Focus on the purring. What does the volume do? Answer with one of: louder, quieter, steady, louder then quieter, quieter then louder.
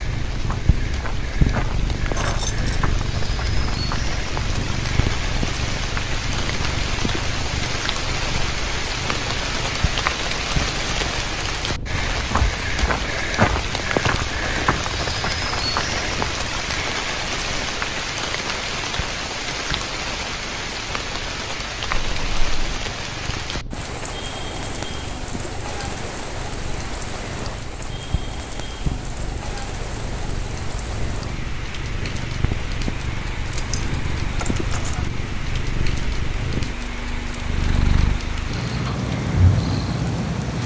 quieter then louder.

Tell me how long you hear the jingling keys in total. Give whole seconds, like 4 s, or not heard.
3 s.